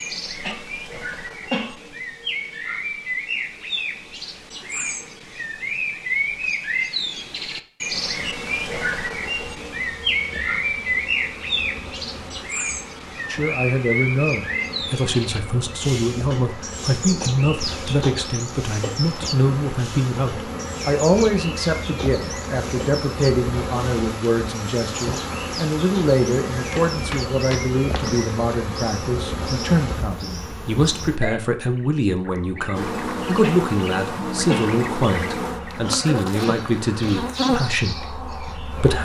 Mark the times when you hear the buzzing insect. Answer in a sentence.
You can hear the buzzing insect from 7.9 to 31.2 s and from 32.8 to 39.0 s.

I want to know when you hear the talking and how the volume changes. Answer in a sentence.
You can hear the talking from 13.3 to 39.0 s, at a steady volume.